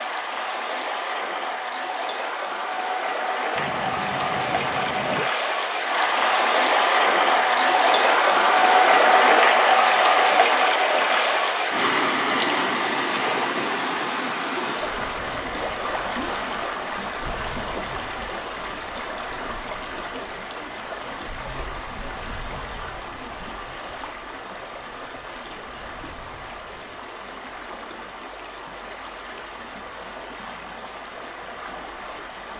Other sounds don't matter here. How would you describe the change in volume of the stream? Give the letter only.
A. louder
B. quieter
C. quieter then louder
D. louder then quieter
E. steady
D.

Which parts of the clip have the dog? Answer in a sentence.
The dog can be heard from 3.5 to 5.3 s.